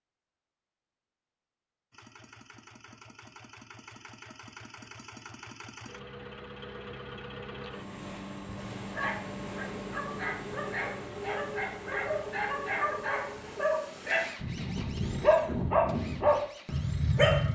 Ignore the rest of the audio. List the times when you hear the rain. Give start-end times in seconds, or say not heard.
not heard.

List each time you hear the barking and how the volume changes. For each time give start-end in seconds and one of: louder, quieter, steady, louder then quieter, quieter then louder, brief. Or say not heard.
8.8-17.5 louder.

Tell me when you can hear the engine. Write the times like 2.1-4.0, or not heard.
1.9-17.5.